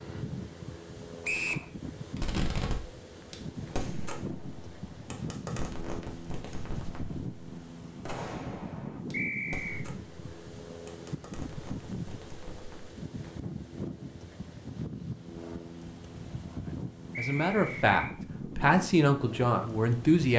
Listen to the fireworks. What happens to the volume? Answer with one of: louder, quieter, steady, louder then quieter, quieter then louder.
quieter.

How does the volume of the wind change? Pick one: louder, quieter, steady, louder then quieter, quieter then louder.
steady.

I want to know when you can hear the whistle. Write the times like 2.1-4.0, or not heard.
1.2-1.6, 9.1-9.8, 17.1-17.9.